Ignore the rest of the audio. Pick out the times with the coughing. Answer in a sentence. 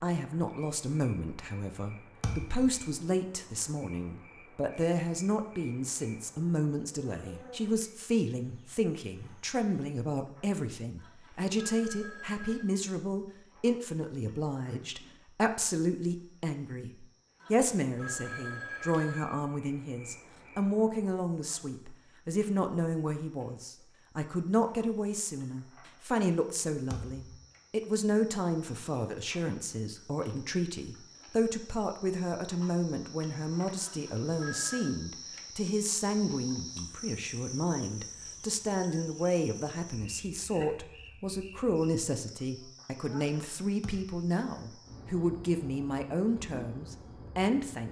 The coughing can't be heard in this clip.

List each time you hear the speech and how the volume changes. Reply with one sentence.
You can hear the speech from 0.0 to 47.8 s, at a steady volume.